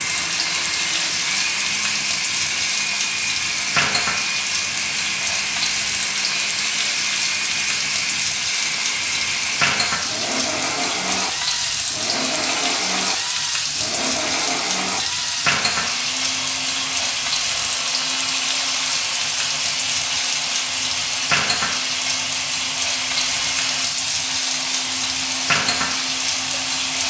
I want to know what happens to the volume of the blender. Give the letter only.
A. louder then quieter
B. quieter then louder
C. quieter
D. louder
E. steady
E.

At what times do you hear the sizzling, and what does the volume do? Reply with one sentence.
You can hear the sizzling from 0.0 to 27.0 s, at a steady volume.